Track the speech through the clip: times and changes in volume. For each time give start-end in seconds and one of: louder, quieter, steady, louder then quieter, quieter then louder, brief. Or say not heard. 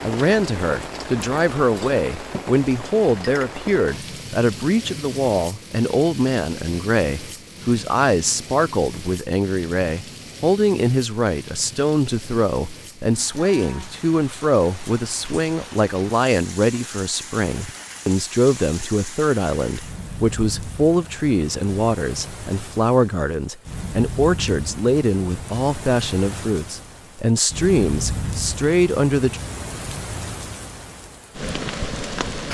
0.0-29.4 steady.